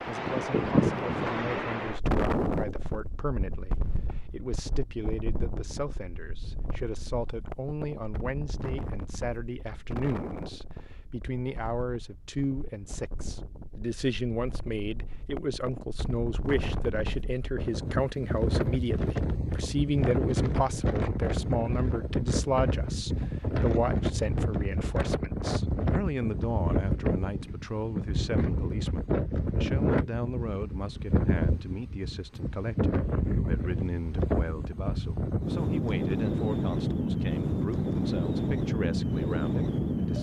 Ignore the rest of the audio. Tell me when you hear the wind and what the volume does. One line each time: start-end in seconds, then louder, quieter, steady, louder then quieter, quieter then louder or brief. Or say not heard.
0.0-40.1 quieter then louder.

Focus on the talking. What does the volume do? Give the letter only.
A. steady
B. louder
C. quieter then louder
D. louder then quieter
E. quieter
D.